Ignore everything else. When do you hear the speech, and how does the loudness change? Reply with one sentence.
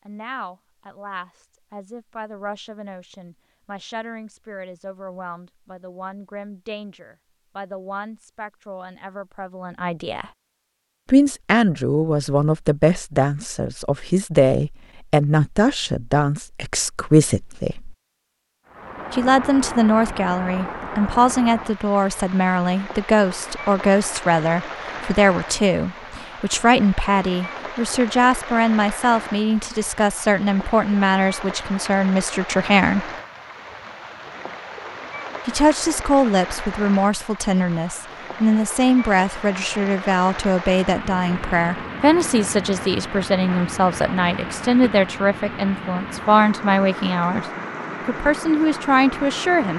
You can hear the speech from 0.1 to 10.2 s, at a steady volume; from 11.1 to 17.9 s, at a steady volume; from 19.1 to 33.1 s, at a steady volume; from 35.5 to 47.5 s, at a steady volume; and briefly from 48.0 to 49.7 s.